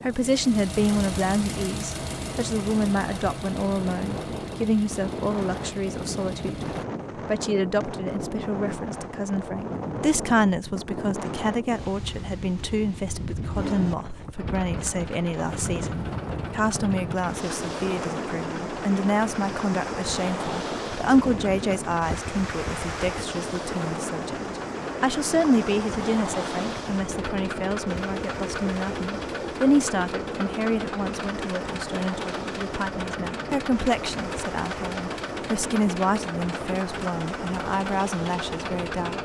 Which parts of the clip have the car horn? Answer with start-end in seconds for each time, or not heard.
not heard.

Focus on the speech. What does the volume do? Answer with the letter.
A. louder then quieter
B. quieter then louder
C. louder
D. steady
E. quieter
D.